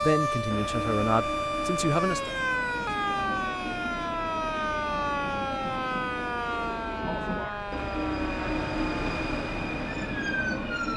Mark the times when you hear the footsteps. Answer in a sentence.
You can't hear the footsteps here.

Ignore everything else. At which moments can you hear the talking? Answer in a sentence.
The talking can be heard from 0.0 to 2.4 s.